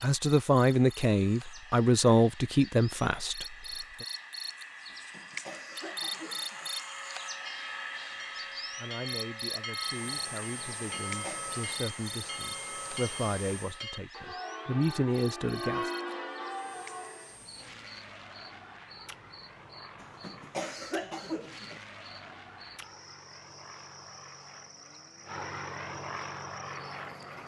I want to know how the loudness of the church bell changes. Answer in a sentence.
The volume of the church bell goes up.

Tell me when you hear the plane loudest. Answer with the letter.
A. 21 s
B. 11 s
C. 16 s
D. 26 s
D.